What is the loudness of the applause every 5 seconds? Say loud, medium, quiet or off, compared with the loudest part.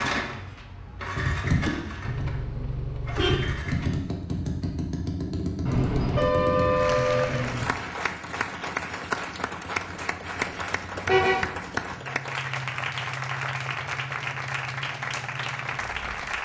off, loud, loud, loud.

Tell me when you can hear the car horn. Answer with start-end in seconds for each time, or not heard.
2.0-3.5, 5.7-7.7, 11.1-11.5.